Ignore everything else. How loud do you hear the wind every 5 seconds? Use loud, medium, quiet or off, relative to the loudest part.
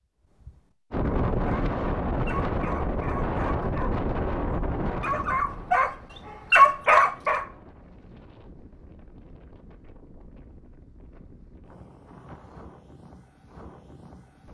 loud, quiet, quiet.